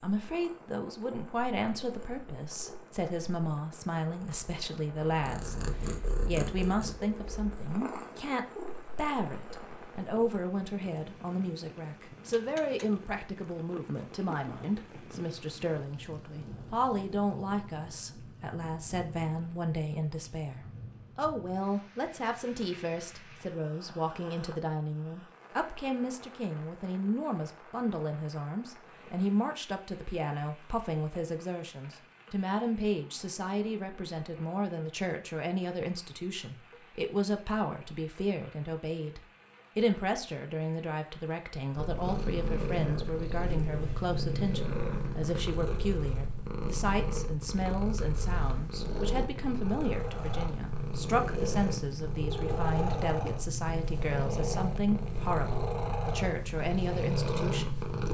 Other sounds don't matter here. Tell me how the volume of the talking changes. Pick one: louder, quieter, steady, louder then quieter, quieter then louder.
steady.